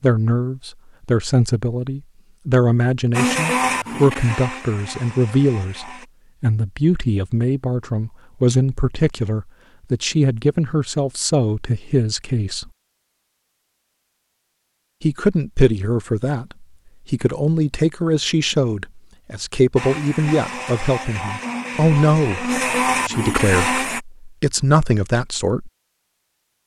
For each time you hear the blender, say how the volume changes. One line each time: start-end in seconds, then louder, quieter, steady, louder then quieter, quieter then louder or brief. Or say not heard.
3.1-6.0 brief
19.8-24.0 louder.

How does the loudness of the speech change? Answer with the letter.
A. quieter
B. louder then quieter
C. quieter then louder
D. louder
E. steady
E.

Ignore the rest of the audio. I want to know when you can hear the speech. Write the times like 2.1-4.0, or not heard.
0.0-12.7, 15.0-25.7.